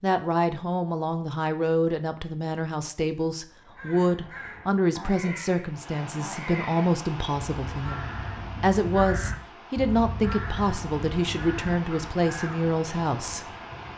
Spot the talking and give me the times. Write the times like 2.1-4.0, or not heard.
0.0-13.4.